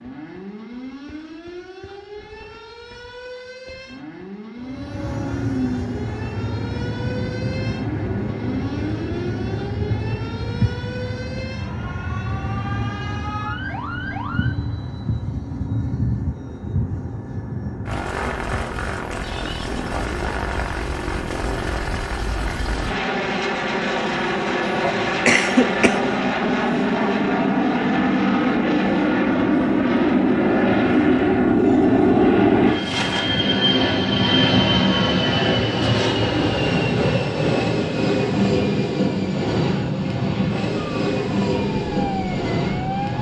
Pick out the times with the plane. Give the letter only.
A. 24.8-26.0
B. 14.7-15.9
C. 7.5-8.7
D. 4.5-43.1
D.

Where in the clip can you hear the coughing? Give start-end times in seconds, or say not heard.
24.8-26.0.